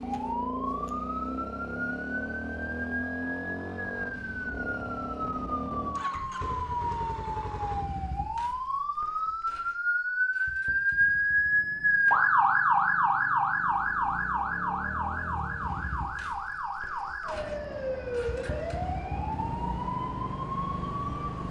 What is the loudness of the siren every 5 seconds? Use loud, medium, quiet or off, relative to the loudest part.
medium, medium, loud, medium, medium.